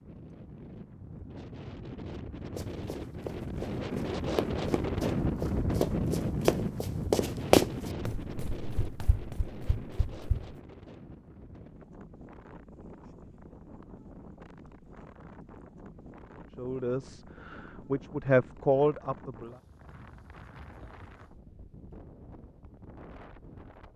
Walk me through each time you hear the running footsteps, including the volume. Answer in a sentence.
The running footsteps can be heard from 2.5 to 10.6 s, getting louder then quieter.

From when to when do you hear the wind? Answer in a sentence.
The wind can be heard from 0.0 to 23.9 s.